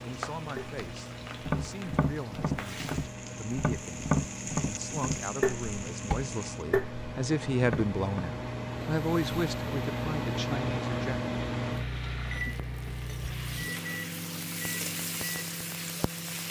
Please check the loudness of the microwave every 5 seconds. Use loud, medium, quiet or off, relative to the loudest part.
medium, loud, loud, medium.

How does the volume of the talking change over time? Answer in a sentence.
The loudness of the talking goes up, then down.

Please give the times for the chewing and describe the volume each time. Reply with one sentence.
The chewing can't be heard in this clip.